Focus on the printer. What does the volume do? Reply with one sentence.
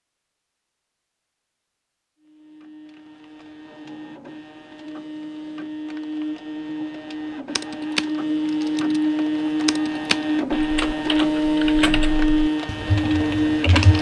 The volume of the printer goes up.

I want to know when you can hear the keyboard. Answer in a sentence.
The keyboard can be heard from 7.3 to 13.9 s.